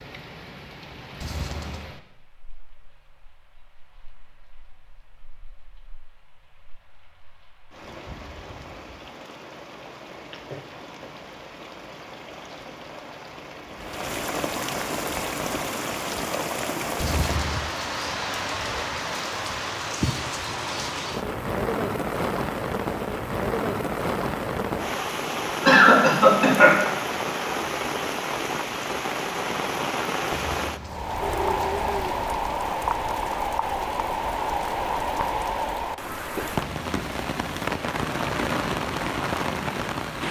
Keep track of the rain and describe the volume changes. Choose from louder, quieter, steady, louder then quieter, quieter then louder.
louder.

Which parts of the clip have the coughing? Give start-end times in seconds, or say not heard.
25.6-26.8.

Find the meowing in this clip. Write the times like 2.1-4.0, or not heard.
1.2-1.9, 16.9-17.6, 30.3-32.3.